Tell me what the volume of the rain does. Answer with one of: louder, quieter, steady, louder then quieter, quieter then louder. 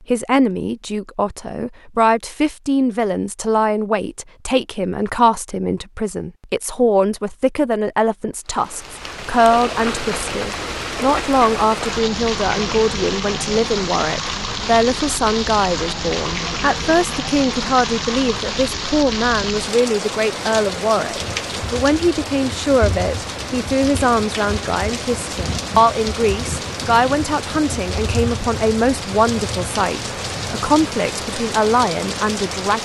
steady.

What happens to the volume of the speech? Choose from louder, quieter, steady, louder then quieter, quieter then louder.
steady.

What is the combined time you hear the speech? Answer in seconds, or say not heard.
33 s.